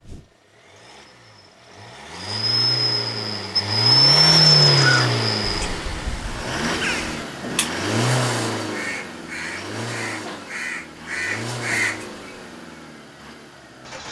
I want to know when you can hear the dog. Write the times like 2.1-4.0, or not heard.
not heard.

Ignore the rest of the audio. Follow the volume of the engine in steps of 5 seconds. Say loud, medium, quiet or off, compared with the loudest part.
loud, medium, quiet.